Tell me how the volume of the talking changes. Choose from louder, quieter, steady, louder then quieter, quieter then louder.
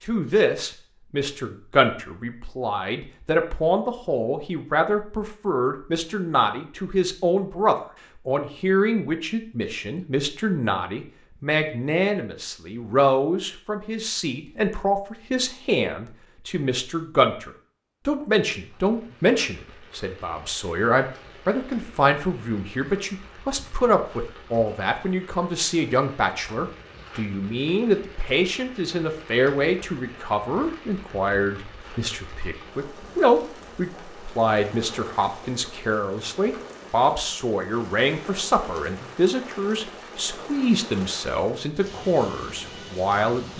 steady.